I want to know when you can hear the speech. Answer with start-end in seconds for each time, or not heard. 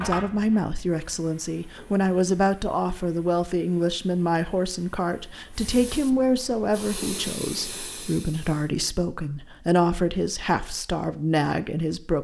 0.0-12.1.